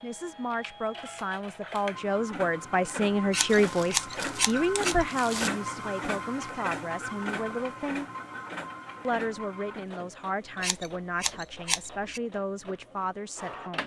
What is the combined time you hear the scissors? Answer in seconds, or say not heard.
3 s.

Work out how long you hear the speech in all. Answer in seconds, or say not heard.
13 s.